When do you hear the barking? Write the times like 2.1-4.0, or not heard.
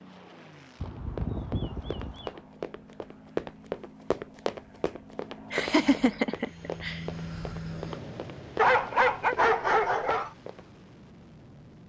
0.8-2.4, 8.6-10.3.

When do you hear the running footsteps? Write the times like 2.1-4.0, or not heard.
0.8-10.7.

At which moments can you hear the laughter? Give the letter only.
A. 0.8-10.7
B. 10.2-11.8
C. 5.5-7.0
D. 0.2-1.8
C.